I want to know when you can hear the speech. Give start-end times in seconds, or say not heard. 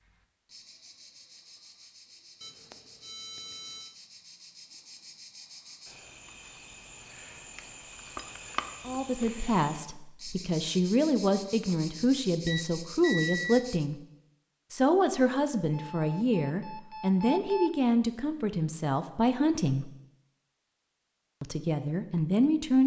8.8-14.0, 14.7-19.9, 21.4-22.8.